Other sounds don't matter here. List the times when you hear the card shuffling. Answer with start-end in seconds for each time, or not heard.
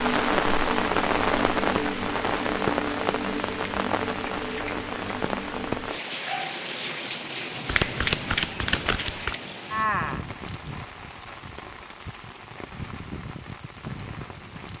7.7-9.4.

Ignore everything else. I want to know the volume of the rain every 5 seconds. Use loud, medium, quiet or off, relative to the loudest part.
loud, medium, quiet.